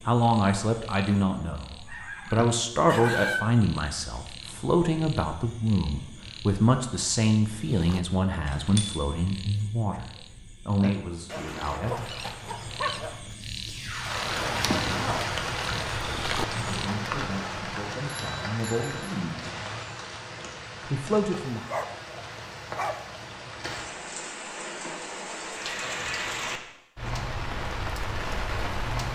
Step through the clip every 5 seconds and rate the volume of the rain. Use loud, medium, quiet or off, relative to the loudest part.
off, off, loud, loud, medium, loud.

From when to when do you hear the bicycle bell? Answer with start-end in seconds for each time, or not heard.
8.3-9.0, 18.1-19.1.